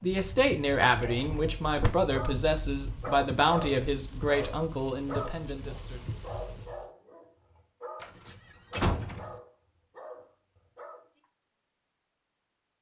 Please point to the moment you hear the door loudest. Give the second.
9 s.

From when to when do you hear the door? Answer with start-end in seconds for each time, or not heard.
0.8-1.9, 8.0-9.3.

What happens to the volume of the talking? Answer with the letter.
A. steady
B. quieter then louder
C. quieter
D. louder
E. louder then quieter
C.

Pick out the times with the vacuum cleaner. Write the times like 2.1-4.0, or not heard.
not heard.